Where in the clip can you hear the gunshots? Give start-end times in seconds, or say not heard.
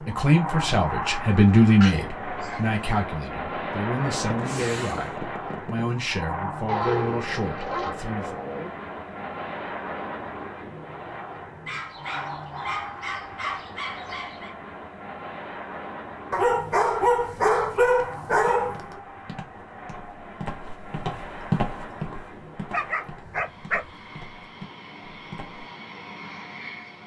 4.3-5.8.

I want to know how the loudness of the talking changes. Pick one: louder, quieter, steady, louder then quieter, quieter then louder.
quieter.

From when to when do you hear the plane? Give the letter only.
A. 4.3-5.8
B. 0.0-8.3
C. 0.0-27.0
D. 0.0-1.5
C.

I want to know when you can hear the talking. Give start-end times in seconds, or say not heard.
0.0-8.3.